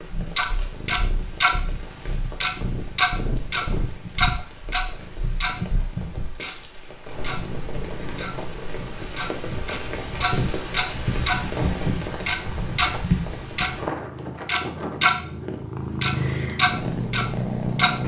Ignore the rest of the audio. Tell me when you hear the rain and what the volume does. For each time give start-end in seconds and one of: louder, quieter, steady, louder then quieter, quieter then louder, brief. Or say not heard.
0.0-13.9 louder.